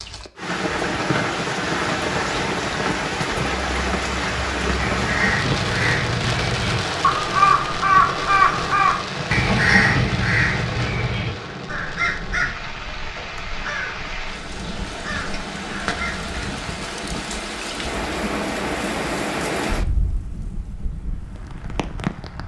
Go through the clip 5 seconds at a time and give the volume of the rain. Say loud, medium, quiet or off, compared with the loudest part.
loud, loud, medium, loud, medium.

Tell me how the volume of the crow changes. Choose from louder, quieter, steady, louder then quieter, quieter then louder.
louder then quieter.